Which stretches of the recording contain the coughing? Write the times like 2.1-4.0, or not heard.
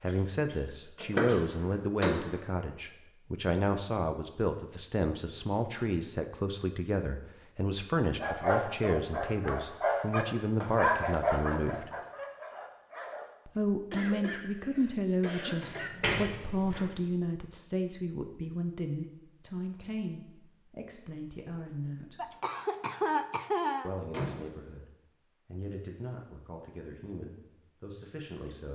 0.1-1.4, 13.9-15.9, 22.1-23.9.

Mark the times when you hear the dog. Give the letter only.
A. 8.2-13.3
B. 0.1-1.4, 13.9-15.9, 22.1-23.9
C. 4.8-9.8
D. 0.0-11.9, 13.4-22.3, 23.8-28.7
A.